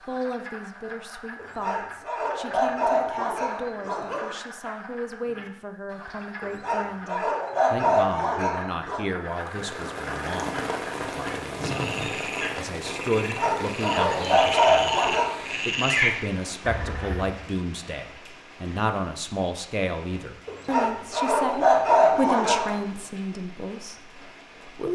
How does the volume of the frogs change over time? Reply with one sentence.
The volume of the frogs goes up.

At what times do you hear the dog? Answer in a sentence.
The dog can be heard from 1.4 to 4.3 s, from 6.4 to 9.1 s, from 13.3 to 15.4 s and from 20.4 to 22.8 s.